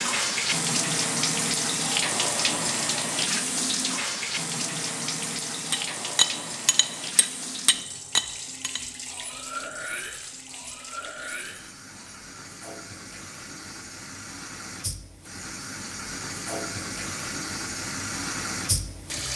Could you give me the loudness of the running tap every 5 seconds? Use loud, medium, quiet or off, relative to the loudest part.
loud, medium, quiet, medium.